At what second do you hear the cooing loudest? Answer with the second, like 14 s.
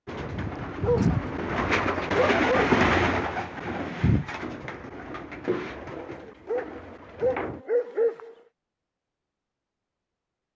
3 s.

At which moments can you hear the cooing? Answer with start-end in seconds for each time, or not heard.
0.1-7.7.